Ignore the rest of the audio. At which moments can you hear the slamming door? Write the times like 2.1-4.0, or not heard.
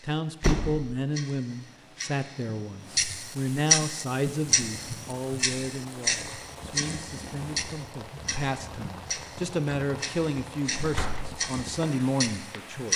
0.4-0.9, 10.7-11.3.